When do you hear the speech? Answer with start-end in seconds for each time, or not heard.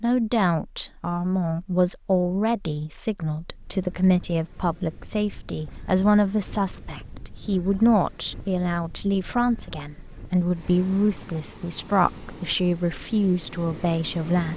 0.0-14.5.